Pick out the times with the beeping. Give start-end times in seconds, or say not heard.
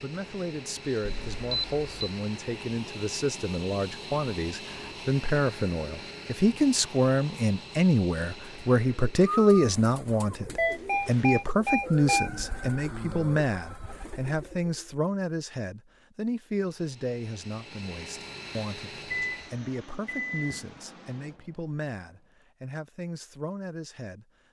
1.1-2.1, 10.6-12.3, 19.1-20.6.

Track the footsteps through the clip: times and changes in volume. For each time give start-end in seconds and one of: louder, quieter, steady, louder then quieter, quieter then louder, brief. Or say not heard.
not heard.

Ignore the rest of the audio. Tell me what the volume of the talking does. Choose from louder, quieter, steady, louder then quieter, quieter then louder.
louder then quieter.